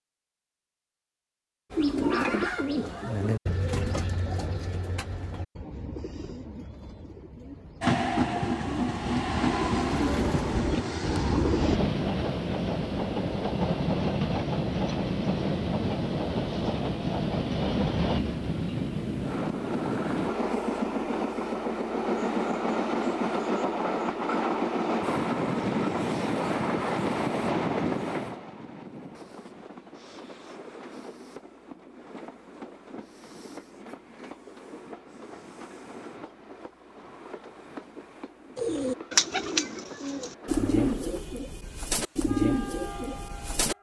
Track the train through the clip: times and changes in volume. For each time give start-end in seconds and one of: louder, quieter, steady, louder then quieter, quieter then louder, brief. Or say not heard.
7.8-43.7 quieter.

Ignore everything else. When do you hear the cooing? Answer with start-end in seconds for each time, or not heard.
1.7-11.8, 38.5-43.7.